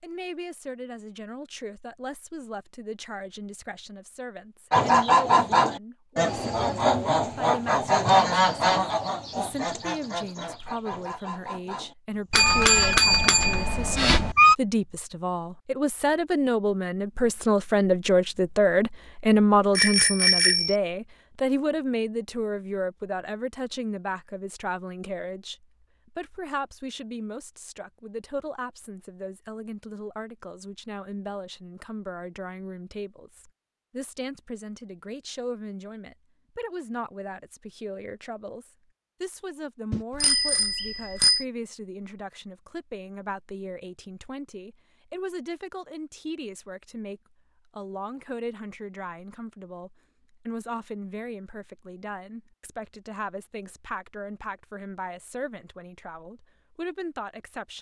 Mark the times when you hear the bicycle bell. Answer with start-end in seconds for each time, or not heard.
12.3-14.3, 19.8-20.8, 39.9-41.5.